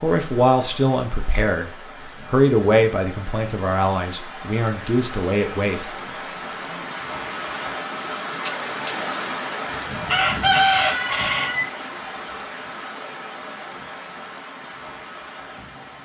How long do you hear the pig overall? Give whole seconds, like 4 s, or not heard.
not heard.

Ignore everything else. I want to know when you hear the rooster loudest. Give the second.
11 s.